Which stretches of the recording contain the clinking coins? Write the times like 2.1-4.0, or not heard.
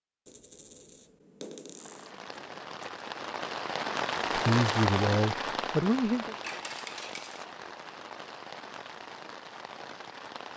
0.2-2.7, 6.3-7.5.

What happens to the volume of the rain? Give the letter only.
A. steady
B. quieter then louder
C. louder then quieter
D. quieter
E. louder
C.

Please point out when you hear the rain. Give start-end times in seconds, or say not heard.
1.7-10.5.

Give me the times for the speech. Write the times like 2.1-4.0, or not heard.
4.3-6.3.